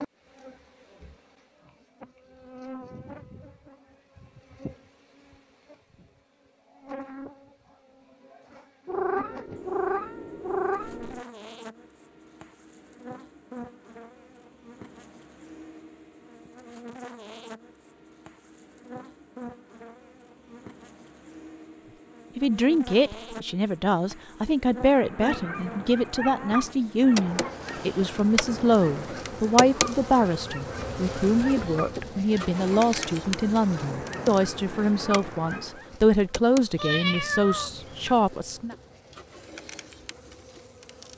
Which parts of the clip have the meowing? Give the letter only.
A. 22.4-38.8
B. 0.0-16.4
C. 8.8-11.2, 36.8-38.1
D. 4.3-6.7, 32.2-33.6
C.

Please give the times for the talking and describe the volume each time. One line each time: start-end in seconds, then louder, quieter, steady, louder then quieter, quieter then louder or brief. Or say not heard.
22.4-38.8 steady.